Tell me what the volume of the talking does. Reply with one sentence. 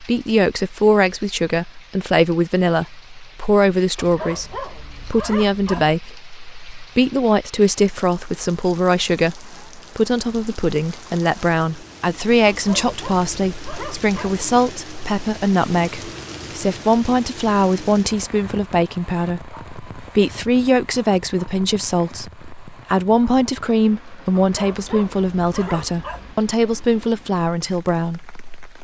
The volume of the talking stays about the same.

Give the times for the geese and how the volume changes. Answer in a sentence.
You can't hear the geese here.